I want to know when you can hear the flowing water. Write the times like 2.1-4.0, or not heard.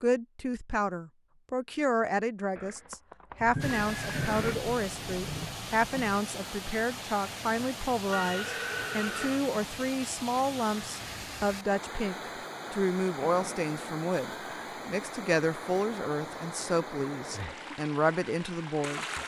3.6-19.2.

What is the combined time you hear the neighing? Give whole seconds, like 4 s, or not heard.
5 s.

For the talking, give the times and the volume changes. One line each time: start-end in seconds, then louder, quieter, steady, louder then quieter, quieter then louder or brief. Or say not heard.
0.0-19.1 steady.